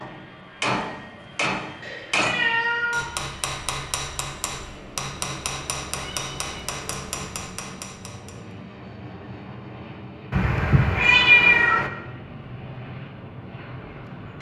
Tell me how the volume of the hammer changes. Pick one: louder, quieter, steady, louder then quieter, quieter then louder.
quieter.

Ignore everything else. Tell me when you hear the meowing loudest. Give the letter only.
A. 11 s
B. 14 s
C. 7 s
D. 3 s
A.